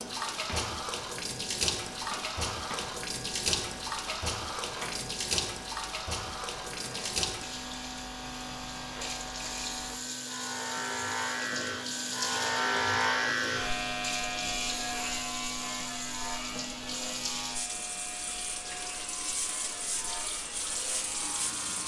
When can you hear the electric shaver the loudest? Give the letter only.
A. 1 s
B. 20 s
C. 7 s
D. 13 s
D.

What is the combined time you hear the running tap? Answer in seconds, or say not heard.
22 s.